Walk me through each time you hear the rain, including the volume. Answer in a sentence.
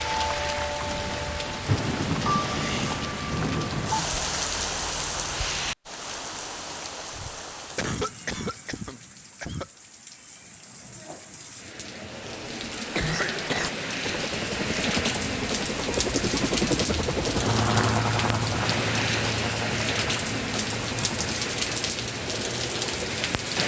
You can hear the rain from 0.0 to 23.6 s, getting quieter then louder.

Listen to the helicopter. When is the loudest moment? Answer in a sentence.
The loudest moment of the helicopter is at 18 seconds.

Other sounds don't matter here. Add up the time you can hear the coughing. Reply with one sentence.
The coughing can be heard for 4 seconds in total.